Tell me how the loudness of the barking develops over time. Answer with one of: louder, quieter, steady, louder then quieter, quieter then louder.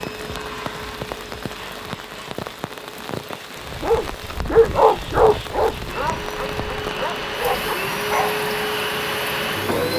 quieter then louder.